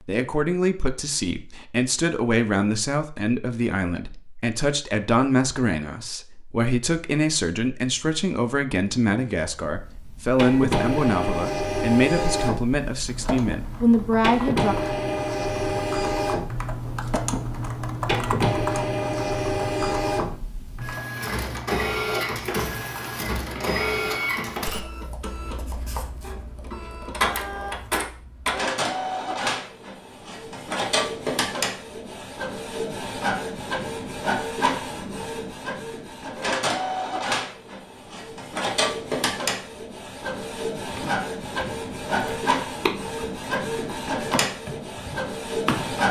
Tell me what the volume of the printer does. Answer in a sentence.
The volume of the printer stays about the same.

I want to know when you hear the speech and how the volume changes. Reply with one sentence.
The speech can be heard from 0.1 to 14.8 s, at a steady volume.